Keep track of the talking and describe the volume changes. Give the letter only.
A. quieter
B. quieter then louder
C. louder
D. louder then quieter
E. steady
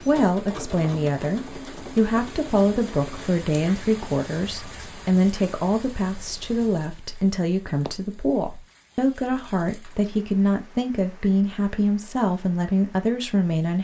E.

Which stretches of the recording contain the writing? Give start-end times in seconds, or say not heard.
not heard.